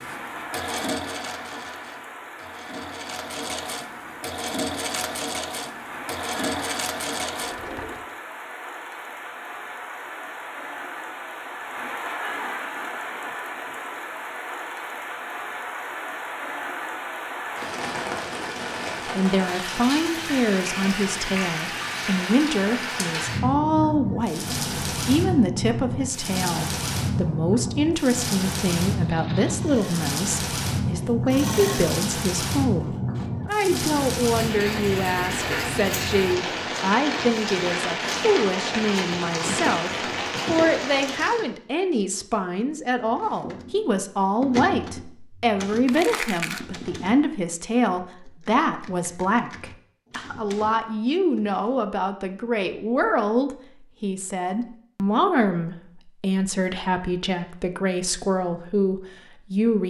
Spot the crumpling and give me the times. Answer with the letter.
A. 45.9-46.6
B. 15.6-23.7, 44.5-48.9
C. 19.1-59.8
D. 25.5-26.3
A.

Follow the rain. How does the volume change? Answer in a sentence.
The loudness of the rain goes up.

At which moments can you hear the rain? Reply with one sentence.
You can hear the rain from 0.0 to 41.5 s.